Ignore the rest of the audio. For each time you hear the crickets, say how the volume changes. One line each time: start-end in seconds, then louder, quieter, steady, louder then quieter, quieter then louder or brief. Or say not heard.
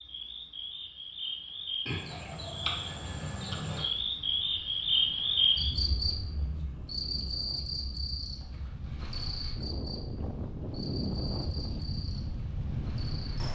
0.0-13.5 louder then quieter.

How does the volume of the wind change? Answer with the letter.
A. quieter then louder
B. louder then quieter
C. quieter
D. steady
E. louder
E.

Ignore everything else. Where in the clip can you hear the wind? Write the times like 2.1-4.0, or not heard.
3.9-13.5.